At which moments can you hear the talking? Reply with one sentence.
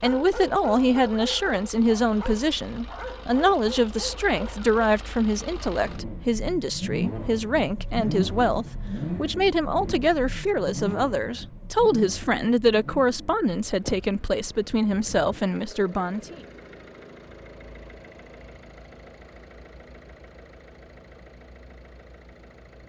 The talking can be heard from 0.0 to 16.4 s.